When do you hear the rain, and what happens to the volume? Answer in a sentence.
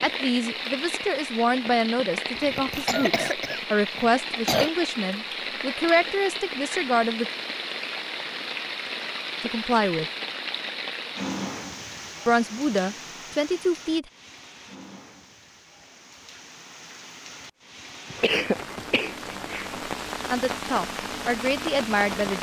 You can hear the rain from 0.0 to 22.3 s, getting quieter then louder.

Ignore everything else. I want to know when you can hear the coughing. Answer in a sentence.
You can hear the coughing from 2.4 to 4.7 s and from 18.1 to 19.8 s.